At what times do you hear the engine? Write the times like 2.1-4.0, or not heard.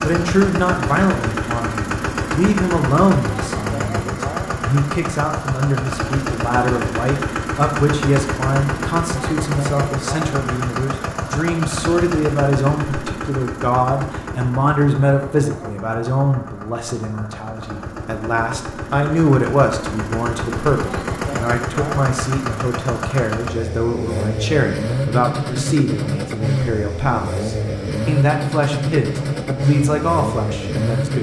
0.0-31.1.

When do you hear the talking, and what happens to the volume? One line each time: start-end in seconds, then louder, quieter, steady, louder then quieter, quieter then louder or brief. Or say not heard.
0.0-31.1 steady.